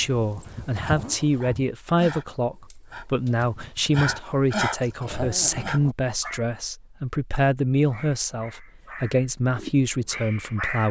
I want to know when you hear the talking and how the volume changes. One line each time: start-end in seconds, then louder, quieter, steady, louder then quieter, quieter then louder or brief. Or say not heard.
0.0-10.8 steady.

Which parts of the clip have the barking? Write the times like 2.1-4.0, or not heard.
0.0-6.4, 7.8-10.8.